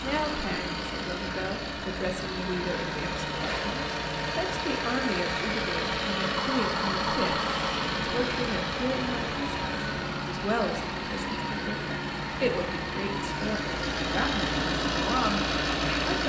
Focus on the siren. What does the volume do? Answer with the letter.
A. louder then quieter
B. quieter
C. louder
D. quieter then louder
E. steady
E.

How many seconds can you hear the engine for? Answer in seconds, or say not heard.
16 s.